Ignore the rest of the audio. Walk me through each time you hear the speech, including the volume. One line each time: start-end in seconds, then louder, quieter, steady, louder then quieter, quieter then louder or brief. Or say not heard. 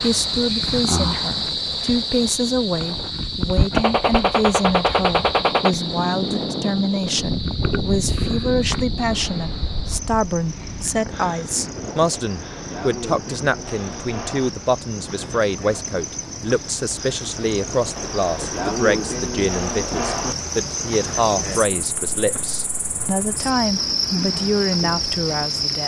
0.0-25.8 steady.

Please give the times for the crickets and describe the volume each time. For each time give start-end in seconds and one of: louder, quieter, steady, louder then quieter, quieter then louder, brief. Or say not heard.
0.0-25.8 quieter then louder.